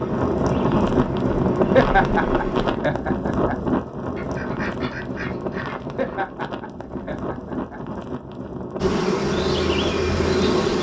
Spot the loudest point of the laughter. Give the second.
2 s.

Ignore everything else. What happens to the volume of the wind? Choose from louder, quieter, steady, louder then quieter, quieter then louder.
quieter.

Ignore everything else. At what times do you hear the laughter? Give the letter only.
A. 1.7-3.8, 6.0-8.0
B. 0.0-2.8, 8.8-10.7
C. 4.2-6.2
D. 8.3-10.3
A.